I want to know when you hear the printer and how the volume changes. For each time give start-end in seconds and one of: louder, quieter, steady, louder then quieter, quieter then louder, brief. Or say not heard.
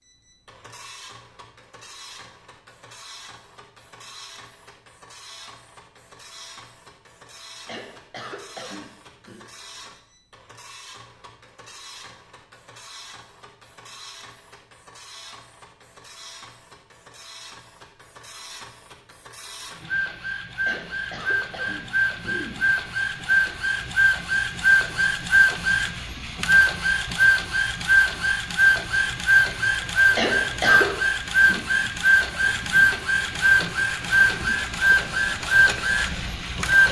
0.0-36.8 louder.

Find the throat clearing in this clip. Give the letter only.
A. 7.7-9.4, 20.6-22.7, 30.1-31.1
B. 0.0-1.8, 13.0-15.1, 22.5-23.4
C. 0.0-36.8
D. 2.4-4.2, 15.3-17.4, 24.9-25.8
A.